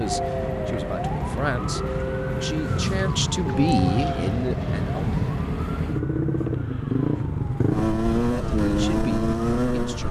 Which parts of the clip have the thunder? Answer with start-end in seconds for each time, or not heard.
2.6-5.5.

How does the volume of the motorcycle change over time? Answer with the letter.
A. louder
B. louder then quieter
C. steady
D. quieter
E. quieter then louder
A.